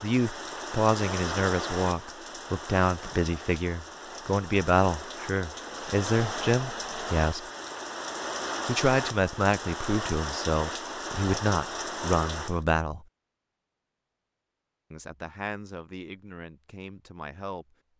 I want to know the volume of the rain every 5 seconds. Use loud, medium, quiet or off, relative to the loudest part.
loud, loud, loud, off.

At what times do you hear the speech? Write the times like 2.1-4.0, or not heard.
0.0-7.5, 8.7-13.1, 14.9-17.8.